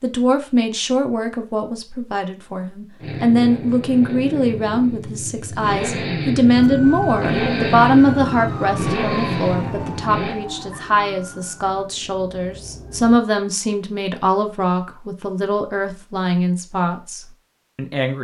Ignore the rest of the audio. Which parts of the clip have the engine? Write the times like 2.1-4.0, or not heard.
3.0-10.4.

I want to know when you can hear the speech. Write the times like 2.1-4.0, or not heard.
0.0-18.1.